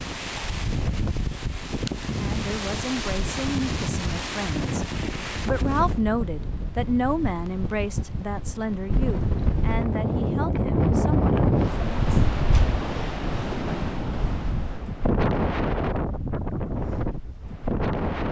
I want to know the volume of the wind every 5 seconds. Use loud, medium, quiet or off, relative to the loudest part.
medium, medium, loud, loud.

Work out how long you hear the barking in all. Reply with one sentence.
You can't hear the barking here.